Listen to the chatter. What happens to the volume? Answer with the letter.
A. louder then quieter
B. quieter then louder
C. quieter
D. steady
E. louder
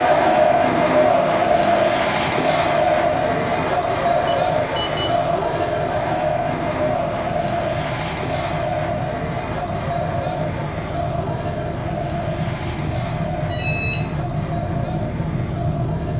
C.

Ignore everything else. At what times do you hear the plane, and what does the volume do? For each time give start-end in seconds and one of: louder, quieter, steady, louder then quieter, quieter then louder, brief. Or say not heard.
0.0-16.1 louder.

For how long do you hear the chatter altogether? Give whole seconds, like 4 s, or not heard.
16 s.